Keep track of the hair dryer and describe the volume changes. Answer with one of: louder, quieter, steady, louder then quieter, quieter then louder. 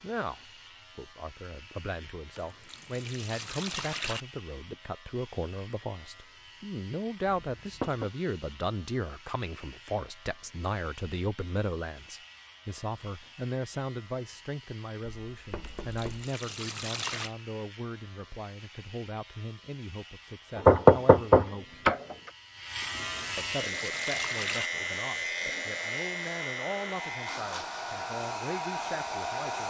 louder.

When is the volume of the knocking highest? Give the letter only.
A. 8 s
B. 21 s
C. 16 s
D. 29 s
B.